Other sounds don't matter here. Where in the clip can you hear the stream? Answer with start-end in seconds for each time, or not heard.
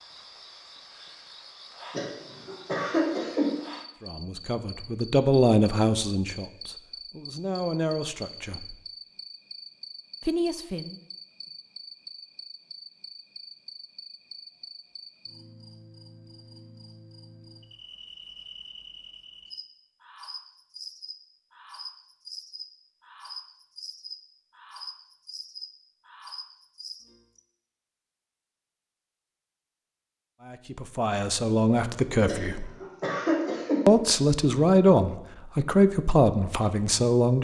not heard.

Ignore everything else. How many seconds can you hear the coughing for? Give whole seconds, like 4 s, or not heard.
3 s.